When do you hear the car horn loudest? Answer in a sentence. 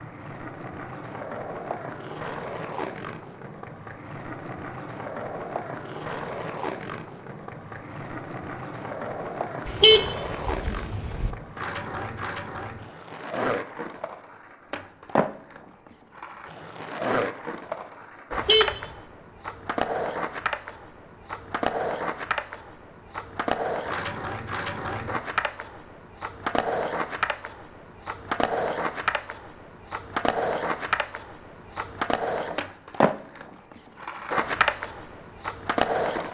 The volume of the car horn peaks at 10 seconds.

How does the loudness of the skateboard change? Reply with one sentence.
The volume of the skateboard goes up.